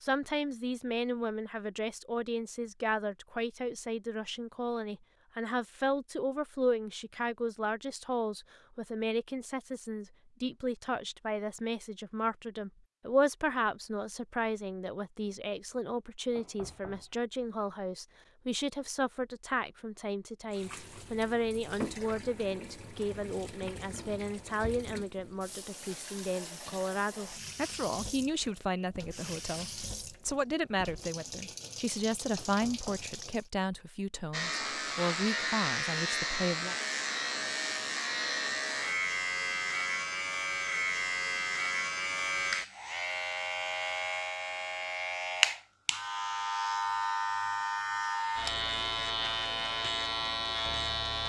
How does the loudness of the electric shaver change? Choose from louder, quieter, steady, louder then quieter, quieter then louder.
steady.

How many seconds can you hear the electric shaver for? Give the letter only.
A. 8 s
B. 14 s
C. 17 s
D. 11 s
C.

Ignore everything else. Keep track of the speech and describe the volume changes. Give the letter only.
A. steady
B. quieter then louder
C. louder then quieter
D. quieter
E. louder
A.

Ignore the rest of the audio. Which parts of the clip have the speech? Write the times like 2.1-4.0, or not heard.
0.0-36.8.